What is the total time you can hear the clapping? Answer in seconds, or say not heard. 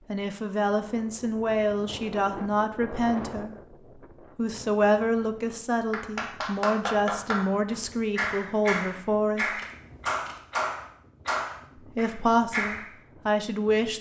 7 s.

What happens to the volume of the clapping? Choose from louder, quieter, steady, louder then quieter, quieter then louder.
steady.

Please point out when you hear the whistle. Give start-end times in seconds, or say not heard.
not heard.